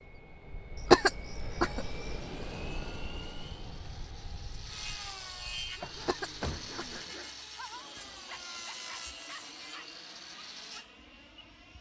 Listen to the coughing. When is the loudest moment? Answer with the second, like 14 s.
1 s.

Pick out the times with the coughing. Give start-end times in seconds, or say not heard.
0.8-2.2, 5.9-7.0.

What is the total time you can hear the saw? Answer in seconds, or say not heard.
9 s.